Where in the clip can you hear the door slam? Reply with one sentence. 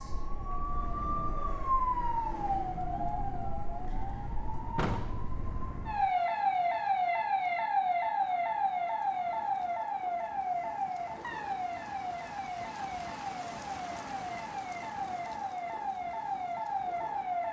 You can hear the door slam from 4.8 to 5.2 s.